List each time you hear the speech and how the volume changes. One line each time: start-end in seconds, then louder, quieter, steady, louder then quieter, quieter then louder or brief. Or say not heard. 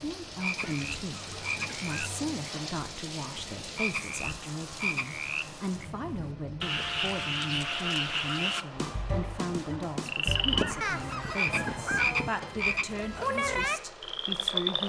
0.0-14.8 steady.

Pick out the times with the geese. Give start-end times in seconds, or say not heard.
0.4-2.4, 10.3-12.3.